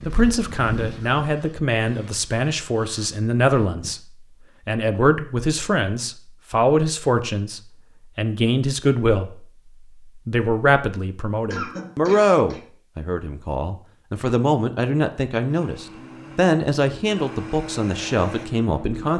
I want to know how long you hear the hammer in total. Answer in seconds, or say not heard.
not heard.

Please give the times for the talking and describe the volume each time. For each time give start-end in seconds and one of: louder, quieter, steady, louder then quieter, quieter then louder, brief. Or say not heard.
0.0-19.1 steady.